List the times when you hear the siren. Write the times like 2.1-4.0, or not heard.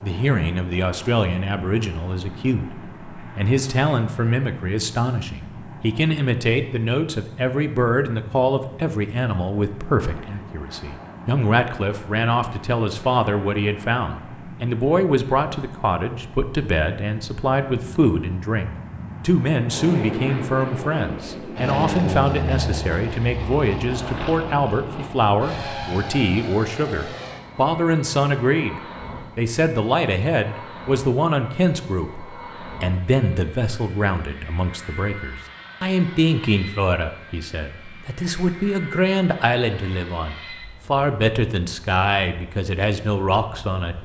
not heard.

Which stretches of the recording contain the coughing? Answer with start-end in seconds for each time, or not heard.
not heard.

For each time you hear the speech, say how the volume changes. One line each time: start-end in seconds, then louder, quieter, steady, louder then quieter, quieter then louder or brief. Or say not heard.
0.0-44.0 steady.